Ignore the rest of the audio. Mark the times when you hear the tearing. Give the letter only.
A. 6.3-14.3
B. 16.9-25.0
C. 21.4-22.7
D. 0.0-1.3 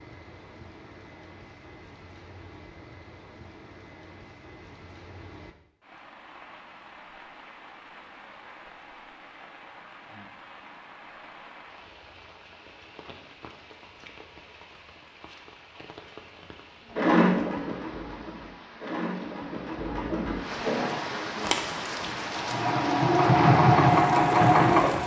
C.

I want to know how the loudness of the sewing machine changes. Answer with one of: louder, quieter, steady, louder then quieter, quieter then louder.
louder.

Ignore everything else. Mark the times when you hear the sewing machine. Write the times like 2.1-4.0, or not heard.
16.9-25.0.